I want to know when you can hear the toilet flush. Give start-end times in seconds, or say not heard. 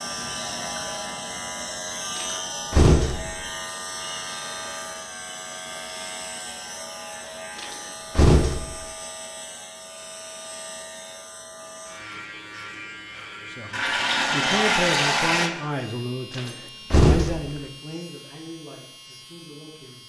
13.7-15.5.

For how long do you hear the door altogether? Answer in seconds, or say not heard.
4 s.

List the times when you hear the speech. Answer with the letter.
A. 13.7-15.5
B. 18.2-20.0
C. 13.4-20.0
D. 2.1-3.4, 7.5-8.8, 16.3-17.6
C.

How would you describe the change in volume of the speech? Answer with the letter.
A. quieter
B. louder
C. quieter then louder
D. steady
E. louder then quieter
A.